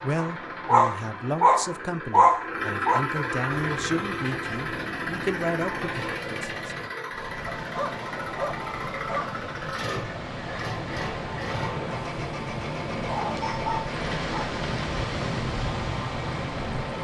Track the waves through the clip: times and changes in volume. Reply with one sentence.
You can hear the waves from 3.5 to 17.0 s, getting louder.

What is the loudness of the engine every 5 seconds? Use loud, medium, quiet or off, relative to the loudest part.
loud, loud, medium, medium.